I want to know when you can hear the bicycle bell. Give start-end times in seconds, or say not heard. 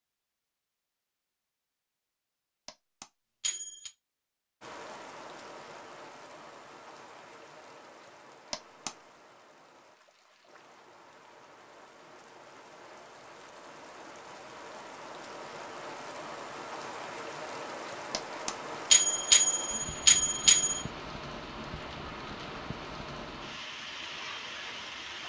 2.6-3.9, 8.5-8.9, 18.1-20.9.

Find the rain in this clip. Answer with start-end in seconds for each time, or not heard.
4.6-25.2.